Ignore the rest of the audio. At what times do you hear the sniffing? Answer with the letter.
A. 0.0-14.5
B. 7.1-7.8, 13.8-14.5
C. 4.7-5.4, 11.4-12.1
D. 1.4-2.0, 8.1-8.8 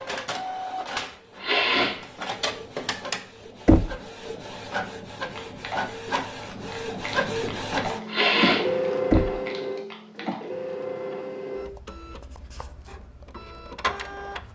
D.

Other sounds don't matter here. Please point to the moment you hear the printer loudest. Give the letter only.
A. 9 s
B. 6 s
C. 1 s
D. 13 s
A.